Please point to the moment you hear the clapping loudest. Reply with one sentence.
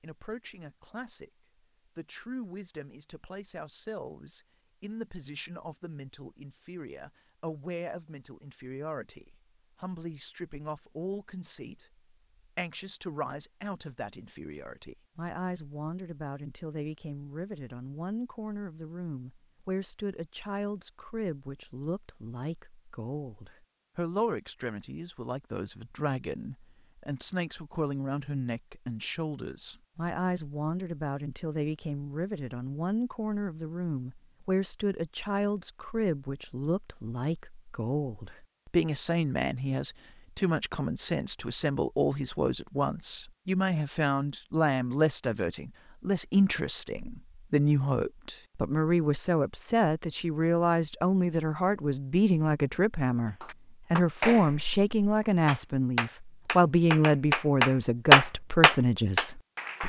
The loudest moment of the clapping is at 58 seconds.